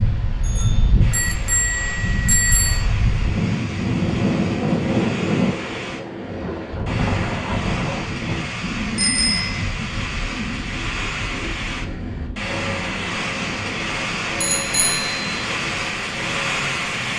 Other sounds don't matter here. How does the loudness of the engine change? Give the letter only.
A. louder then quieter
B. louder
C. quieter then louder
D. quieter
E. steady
B.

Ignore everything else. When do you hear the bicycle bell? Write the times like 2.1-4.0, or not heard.
0.5-2.9, 8.9-9.6, 14.4-15.2.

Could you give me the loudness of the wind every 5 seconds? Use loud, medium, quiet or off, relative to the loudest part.
loud, loud, medium, medium.